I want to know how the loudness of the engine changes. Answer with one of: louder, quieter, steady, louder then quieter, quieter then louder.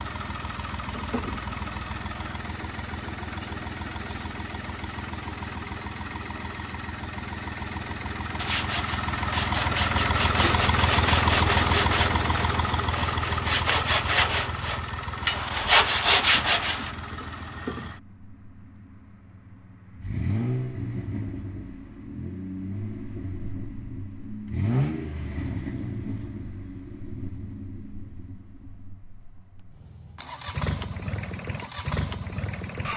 louder then quieter.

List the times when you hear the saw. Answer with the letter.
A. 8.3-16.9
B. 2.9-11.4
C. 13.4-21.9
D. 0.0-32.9
A.